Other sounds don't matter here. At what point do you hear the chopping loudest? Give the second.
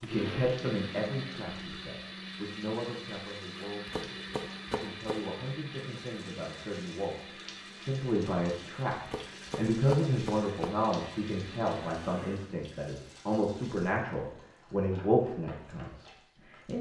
10 s.